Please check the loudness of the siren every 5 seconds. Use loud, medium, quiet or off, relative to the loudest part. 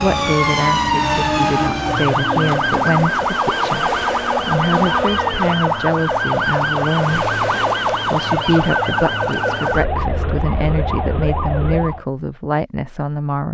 loud, loud, medium.